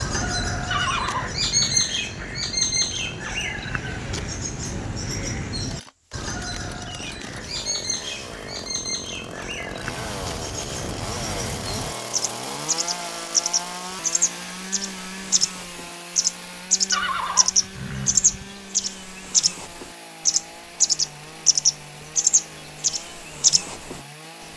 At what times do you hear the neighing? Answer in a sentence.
The neighing can be heard from 0.7 to 1.9 s and from 16.9 to 18.5 s.